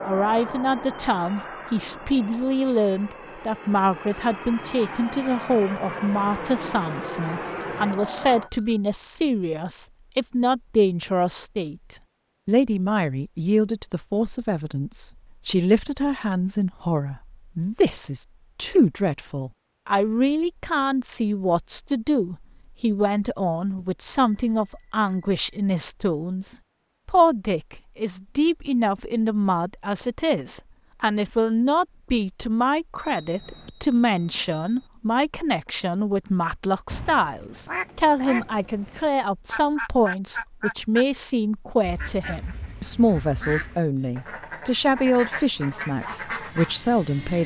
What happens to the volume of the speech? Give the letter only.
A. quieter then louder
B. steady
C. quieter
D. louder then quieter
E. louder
B.